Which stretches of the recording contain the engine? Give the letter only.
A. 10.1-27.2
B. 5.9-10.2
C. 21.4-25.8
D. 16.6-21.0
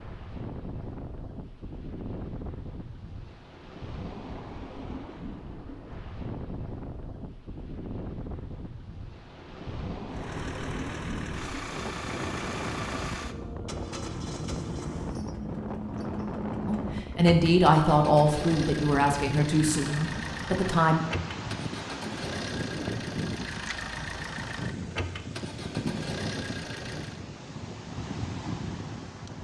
A.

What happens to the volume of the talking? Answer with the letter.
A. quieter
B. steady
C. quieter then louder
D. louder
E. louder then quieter
A.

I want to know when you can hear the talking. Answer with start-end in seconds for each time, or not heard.
16.6-21.0.